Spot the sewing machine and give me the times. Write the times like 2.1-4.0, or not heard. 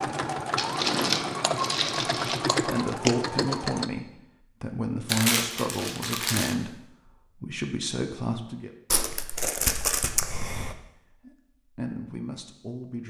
0.0-3.9.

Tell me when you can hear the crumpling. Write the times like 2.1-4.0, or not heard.
0.6-2.4, 5.0-6.5, 8.9-10.8.